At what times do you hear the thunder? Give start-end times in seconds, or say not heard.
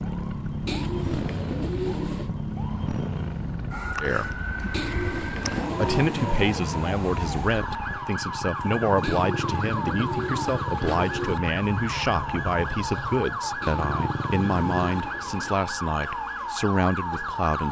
not heard.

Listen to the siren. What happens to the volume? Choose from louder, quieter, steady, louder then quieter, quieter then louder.
steady.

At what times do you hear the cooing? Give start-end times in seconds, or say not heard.
0.7-2.3, 4.7-6.3, 9.0-11.4, 13.6-15.6.